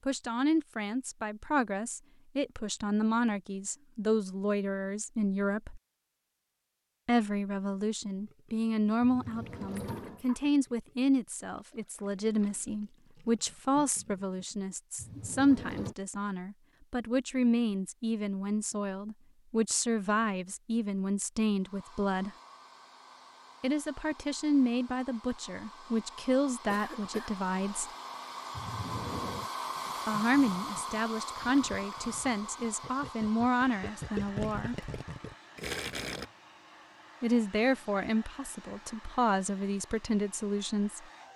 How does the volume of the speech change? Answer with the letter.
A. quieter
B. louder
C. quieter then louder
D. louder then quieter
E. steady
E.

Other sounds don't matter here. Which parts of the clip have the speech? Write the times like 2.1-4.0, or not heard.
0.1-5.8, 7.0-22.3, 23.6-27.9, 30.1-34.8, 37.2-41.0.